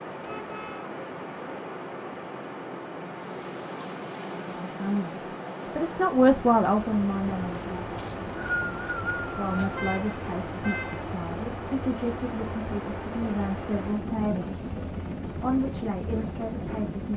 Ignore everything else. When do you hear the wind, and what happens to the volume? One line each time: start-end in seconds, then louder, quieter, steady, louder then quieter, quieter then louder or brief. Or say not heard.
0.0-17.1 steady.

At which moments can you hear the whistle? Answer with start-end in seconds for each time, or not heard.
8.0-9.8.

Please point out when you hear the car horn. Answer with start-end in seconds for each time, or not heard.
0.2-0.9, 9.4-11.2.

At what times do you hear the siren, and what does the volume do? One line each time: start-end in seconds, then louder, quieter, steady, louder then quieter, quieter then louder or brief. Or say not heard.
not heard.